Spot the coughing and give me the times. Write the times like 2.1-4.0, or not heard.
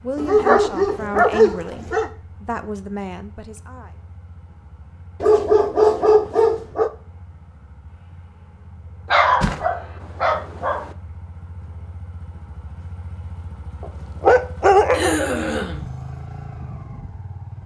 14.9-15.8.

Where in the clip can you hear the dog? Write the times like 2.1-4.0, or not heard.
0.1-2.1, 5.2-6.9, 9.1-10.9, 13.8-15.2.